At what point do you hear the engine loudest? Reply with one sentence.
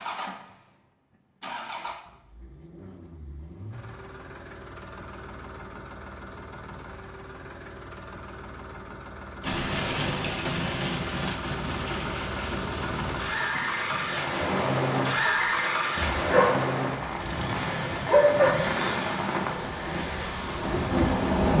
The volume of the engine peaks at 15 seconds.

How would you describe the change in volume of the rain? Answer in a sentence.
The loudness of the rain goes down, then up.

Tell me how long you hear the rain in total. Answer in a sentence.
The rain can be heard for 12 seconds in total.